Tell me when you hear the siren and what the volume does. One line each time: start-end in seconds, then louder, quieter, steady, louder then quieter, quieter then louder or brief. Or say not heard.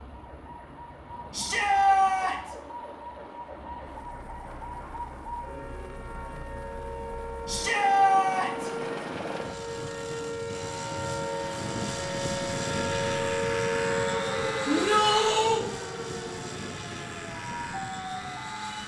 0.0-18.8 louder then quieter.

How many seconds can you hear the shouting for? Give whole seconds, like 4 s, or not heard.
3 s.